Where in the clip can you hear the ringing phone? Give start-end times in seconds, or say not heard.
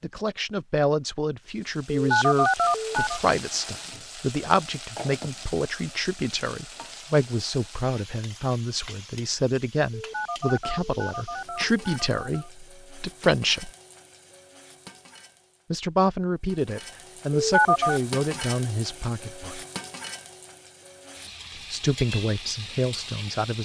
2.0-3.2, 9.9-12.5, 17.4-18.0.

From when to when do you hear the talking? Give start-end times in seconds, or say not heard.
0.0-13.7, 15.7-19.6, 21.7-23.5.